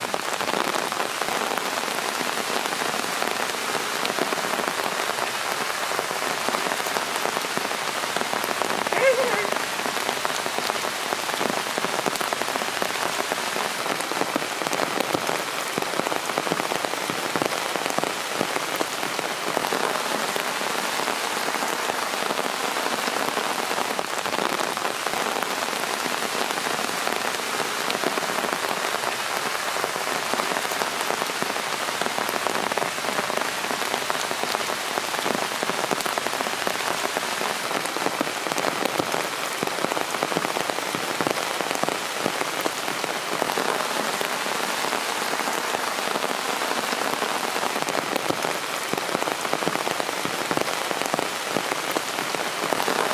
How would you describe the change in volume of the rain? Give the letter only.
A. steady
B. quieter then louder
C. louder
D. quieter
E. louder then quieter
A.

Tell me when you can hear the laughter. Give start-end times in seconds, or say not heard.
8.9-9.5.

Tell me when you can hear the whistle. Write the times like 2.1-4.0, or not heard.
not heard.